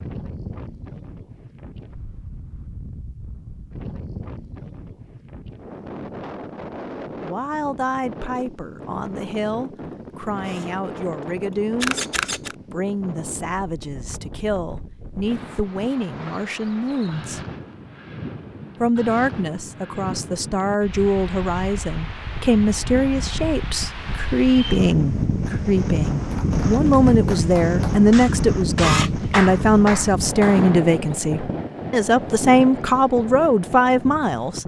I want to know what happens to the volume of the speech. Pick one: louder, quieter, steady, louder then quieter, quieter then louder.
louder.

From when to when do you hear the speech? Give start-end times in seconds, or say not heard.
7.2-12.1, 12.7-17.4, 18.8-34.6.